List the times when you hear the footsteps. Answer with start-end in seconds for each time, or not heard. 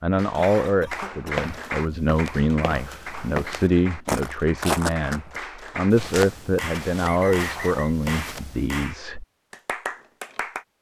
0.9-8.7.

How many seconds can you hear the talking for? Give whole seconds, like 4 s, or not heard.
9 s.